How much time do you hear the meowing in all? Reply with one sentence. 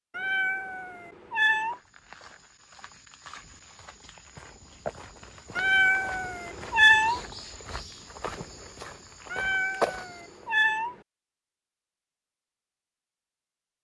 You can hear the meowing for 5 seconds altogether.